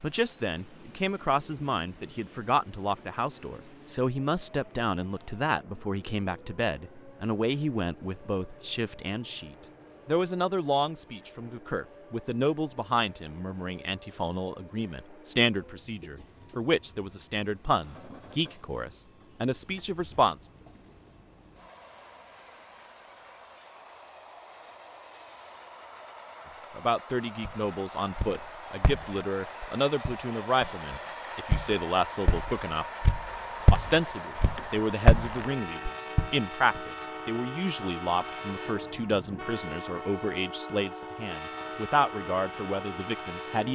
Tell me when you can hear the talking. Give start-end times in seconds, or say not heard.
0.0-20.4, 26.8-32.9, 33.7-43.6.